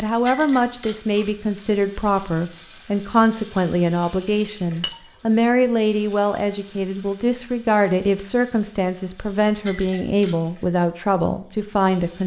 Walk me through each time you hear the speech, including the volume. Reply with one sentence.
The speech can be heard from 0.0 to 12.2 s, at a steady volume.